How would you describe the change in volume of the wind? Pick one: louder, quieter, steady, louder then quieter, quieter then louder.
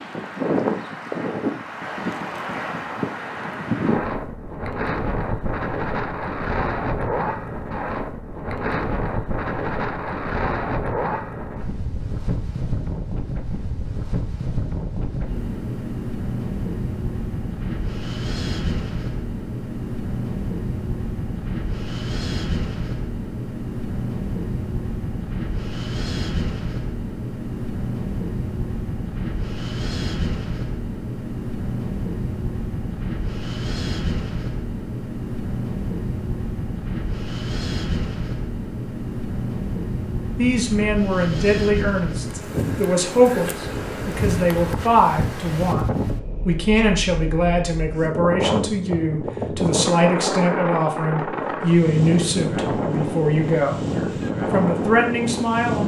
steady.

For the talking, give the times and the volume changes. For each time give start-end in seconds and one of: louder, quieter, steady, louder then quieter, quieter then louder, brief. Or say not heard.
40.4-55.8 steady.